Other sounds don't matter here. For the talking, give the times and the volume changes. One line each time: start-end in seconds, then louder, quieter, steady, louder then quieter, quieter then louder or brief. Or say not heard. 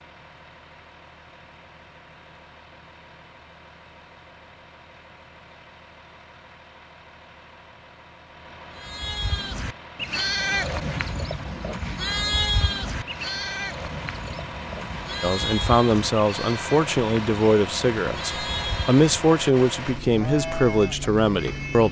15.2-21.8 steady.